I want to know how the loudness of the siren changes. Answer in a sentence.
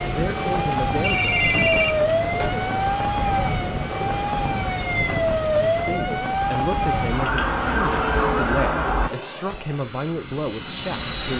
The volume of the siren stays about the same.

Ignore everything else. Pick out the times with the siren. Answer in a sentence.
The siren can be heard from 0.0 to 9.1 s.